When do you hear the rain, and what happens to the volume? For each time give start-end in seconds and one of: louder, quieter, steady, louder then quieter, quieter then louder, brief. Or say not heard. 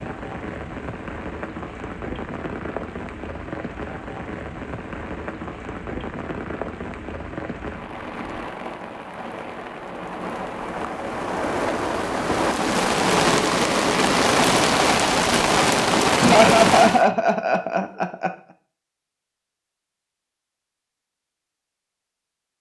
0.0-17.1 louder.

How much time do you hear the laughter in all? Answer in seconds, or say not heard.
2 s.